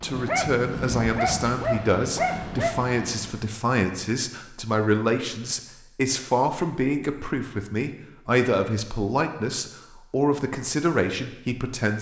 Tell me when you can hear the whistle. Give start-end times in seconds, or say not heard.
not heard.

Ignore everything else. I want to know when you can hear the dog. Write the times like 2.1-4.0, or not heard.
0.1-2.8.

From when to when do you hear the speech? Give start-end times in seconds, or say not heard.
0.0-11.9.